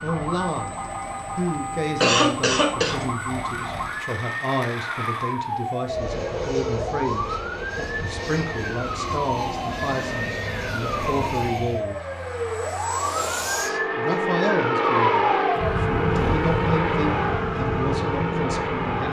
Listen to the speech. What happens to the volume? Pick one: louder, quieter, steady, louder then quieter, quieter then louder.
steady.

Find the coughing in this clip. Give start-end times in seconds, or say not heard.
2.0-3.0.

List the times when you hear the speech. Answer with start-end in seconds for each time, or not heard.
0.0-12.0, 13.6-19.0.